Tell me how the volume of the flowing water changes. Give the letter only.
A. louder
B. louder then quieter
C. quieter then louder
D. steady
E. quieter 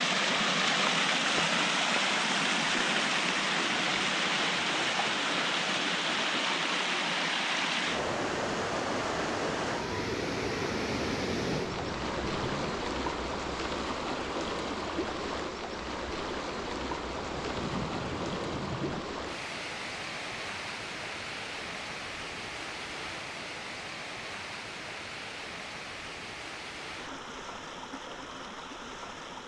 E.